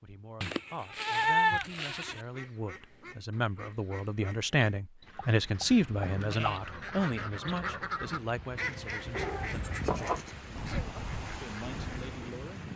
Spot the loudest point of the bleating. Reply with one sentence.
The loudest moment of the bleating is at 1 second.